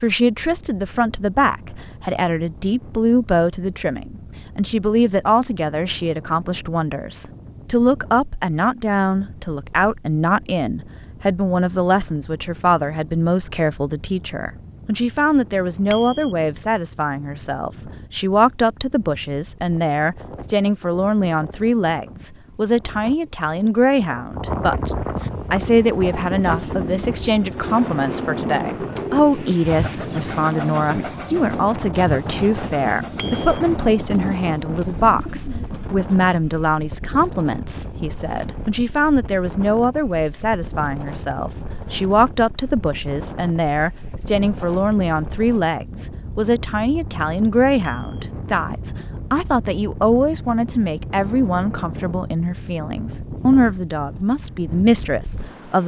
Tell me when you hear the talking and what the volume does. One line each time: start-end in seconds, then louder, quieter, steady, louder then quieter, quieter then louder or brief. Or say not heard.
0.0-55.8 steady.